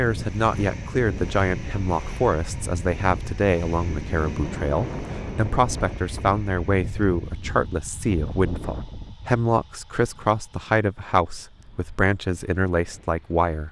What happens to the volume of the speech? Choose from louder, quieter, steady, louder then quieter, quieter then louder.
steady.